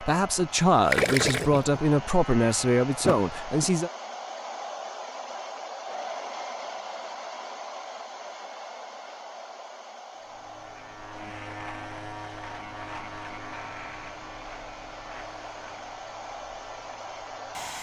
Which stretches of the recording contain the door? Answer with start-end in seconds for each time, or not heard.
3.0-3.7.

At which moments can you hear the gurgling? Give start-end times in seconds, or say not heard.
0.8-1.9.